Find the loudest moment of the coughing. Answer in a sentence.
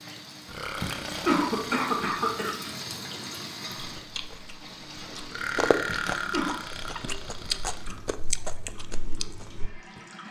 The volume of the coughing peaks at 1 second.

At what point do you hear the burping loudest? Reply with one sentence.
The volume of the burping peaks at 6 seconds.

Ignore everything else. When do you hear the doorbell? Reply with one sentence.
The doorbell can't be heard in this clip.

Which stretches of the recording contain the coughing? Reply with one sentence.
The coughing can be heard from 0.8 to 2.5 s and from 5.8 to 6.7 s.